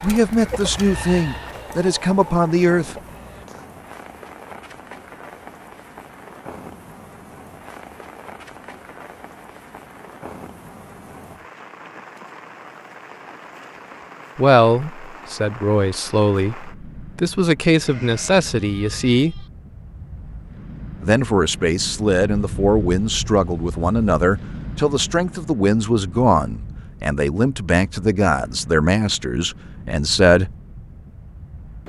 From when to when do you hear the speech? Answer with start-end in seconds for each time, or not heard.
0.0-3.0, 14.3-19.4, 21.0-30.5.